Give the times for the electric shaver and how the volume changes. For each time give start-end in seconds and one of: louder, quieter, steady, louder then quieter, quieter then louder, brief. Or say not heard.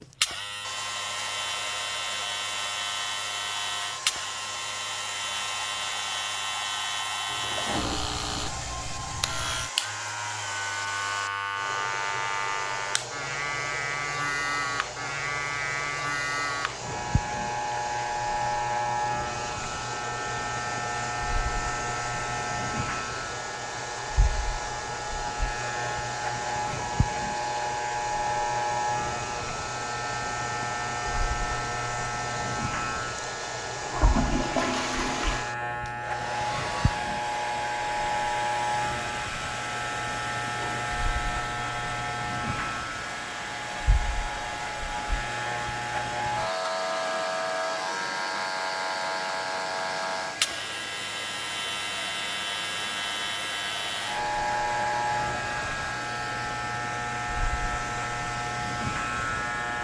0.0-59.7 steady.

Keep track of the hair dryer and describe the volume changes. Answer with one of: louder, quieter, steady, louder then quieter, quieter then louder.
steady.